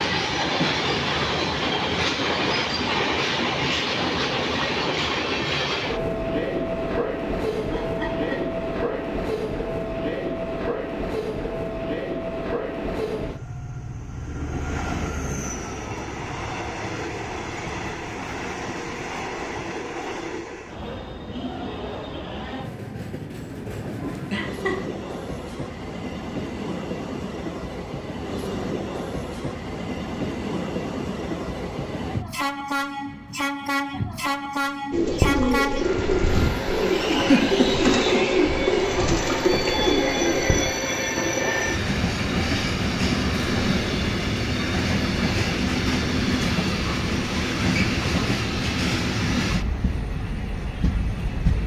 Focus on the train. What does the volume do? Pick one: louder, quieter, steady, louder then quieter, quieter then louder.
quieter then louder.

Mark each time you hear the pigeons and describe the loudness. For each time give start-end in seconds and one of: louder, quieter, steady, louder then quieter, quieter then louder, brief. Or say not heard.
34.9-40.6 steady.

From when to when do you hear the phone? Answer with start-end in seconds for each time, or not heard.
not heard.